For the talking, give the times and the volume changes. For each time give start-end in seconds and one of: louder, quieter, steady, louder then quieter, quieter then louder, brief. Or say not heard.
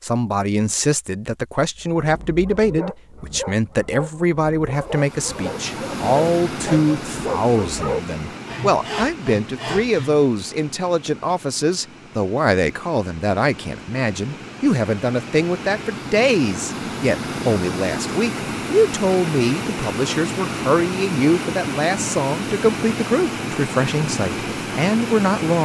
0.0-25.6 steady.